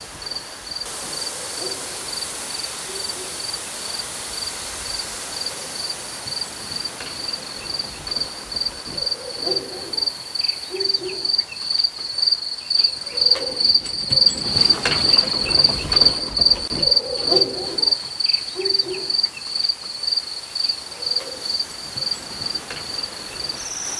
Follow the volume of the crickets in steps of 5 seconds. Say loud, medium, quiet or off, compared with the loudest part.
quiet, medium, loud, loud, medium.